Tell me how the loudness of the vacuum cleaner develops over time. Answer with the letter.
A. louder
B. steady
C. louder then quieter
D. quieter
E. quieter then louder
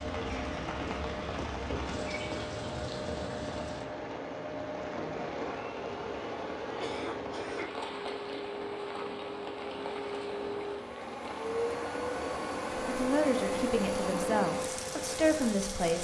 A.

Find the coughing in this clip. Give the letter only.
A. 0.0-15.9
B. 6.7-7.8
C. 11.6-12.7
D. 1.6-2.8
B.